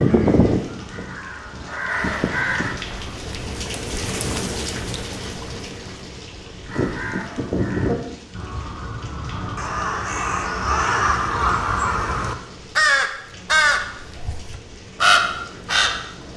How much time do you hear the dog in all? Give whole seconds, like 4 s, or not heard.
not heard.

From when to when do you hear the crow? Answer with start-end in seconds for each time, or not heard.
0.0-2.8, 6.7-16.3.